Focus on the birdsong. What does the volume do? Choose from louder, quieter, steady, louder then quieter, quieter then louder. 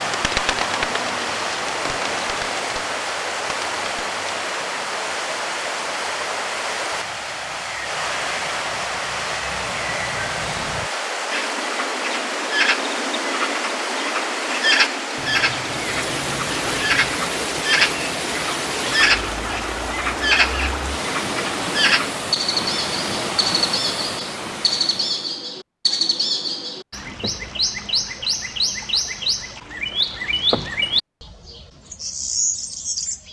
louder.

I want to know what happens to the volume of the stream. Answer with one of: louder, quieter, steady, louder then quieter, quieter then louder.
steady.